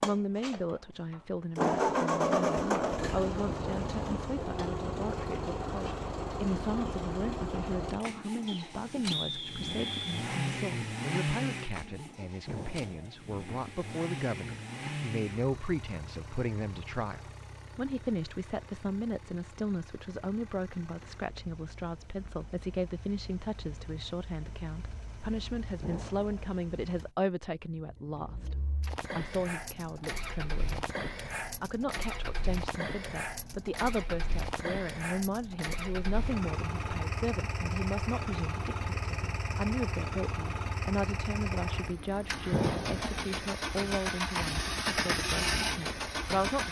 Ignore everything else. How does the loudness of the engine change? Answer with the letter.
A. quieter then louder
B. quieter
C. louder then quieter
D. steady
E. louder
A.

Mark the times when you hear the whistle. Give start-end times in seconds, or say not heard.
8.4-10.2.